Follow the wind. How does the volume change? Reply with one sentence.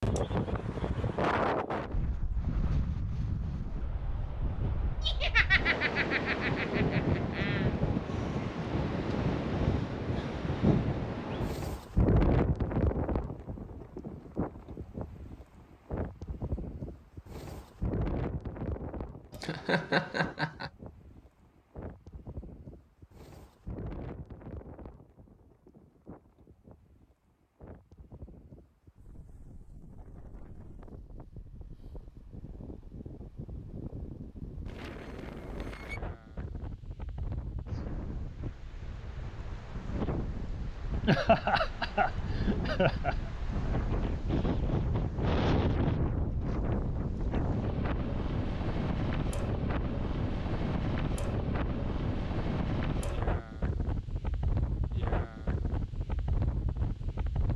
The volume of the wind goes down, then up.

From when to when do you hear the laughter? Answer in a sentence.
The laughter can be heard from 5.0 to 7.7 s, from 19.3 to 20.7 s and from 41.0 to 43.1 s.